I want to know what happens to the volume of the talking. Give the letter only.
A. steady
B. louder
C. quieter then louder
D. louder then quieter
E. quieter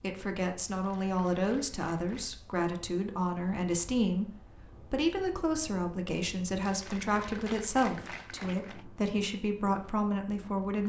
A.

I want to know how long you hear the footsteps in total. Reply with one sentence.
You can't hear the footsteps here.